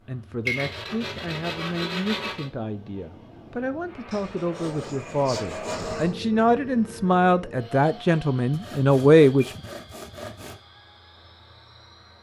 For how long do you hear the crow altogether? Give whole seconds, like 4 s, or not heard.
not heard.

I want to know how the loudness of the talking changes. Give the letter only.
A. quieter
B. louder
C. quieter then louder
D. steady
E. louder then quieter
B.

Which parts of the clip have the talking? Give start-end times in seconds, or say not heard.
0.1-9.5.